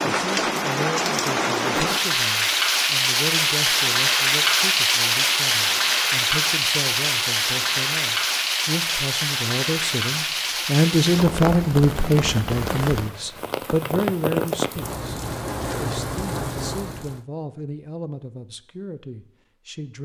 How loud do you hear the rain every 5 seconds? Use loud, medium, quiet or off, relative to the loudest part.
loud, loud, medium, medium.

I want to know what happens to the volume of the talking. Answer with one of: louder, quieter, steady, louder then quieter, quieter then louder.
louder then quieter.